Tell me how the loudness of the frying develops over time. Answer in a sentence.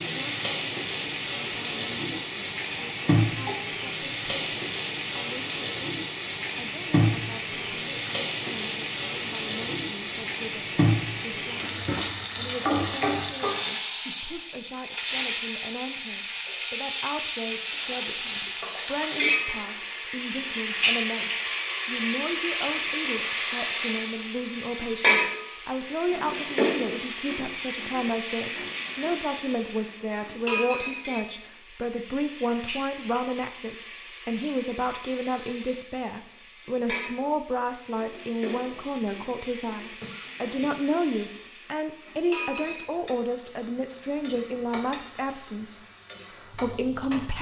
The volume of the frying goes down.